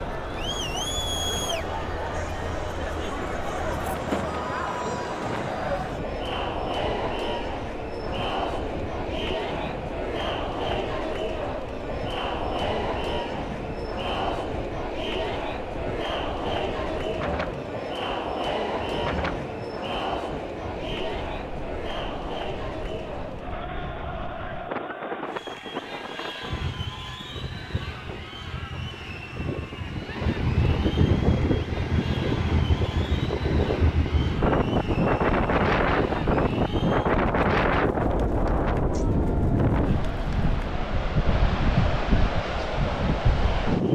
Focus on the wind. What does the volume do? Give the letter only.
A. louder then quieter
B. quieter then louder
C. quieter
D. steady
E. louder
E.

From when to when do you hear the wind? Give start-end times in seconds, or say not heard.
0.0-43.8.